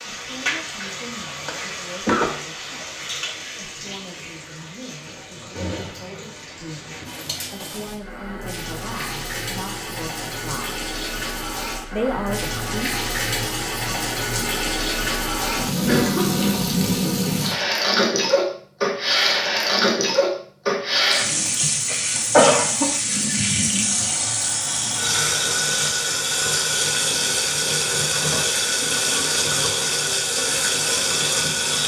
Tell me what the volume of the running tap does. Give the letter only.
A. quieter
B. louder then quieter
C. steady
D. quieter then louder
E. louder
E.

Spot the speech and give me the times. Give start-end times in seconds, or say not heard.
0.1-10.8, 11.9-12.9.